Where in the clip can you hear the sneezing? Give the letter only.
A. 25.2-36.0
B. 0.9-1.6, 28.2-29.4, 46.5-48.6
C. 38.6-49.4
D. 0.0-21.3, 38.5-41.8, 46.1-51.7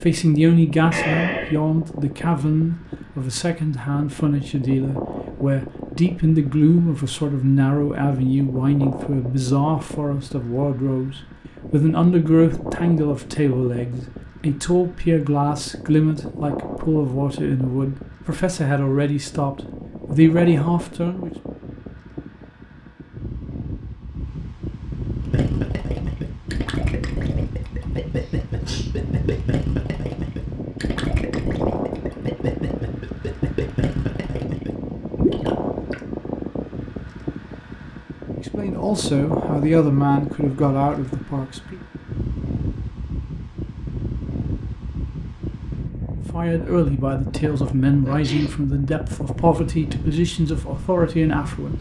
B.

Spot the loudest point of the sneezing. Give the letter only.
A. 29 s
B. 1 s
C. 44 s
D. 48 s
B.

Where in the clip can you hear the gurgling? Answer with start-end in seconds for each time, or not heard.
25.2-36.0.